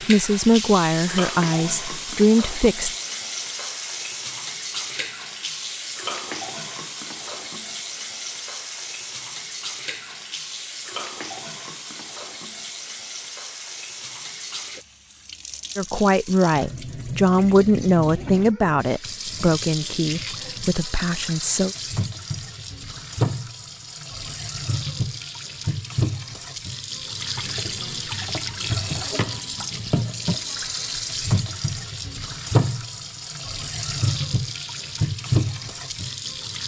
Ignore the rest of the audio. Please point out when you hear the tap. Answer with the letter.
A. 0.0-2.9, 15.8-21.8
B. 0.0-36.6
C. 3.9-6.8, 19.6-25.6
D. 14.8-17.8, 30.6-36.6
B.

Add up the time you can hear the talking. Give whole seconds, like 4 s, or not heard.
9 s.